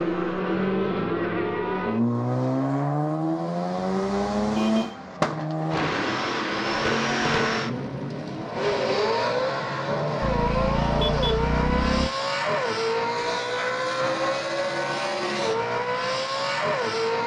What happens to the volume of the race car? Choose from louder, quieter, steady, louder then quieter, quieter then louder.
steady.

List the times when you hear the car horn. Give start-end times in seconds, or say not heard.
3.8-5.0, 10.2-12.1.